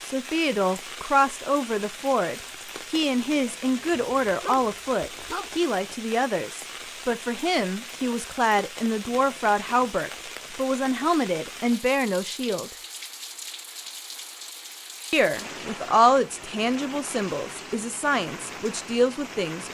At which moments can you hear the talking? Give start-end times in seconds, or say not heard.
0.1-12.7, 15.1-19.6.